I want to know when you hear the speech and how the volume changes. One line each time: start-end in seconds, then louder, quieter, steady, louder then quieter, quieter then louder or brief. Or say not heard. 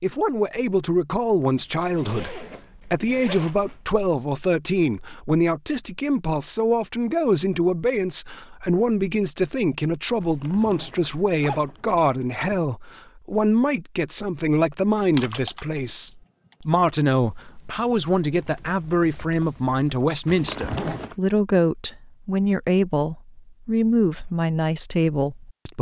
0.0-25.7 steady.